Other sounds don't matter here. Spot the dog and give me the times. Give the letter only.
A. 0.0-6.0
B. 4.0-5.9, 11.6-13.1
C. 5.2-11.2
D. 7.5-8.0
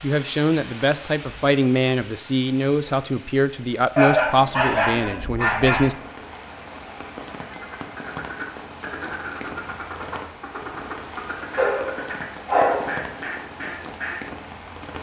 B.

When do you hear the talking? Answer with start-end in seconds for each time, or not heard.
0.0-6.0.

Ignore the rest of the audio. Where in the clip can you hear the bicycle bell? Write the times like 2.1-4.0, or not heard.
7.5-8.0.